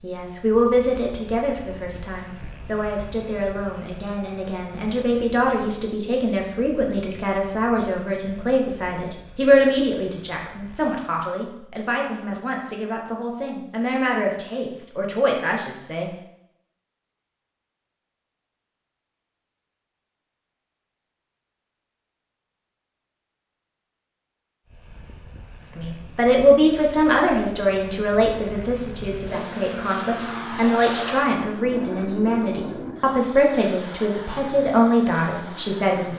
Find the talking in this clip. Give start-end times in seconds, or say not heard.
0.0-16.1, 25.6-36.1.